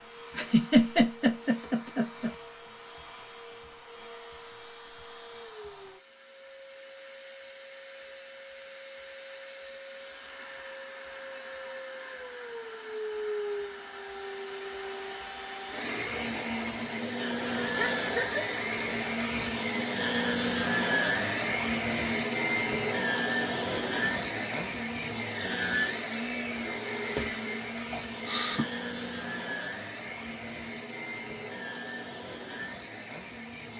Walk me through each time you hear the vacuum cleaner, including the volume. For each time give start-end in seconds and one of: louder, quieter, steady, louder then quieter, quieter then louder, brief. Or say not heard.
0.0-33.7 louder then quieter.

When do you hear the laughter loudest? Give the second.
1 s.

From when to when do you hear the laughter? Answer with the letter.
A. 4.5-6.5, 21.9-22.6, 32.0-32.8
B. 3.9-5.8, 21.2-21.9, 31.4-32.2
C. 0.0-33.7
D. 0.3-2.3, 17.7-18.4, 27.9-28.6
D.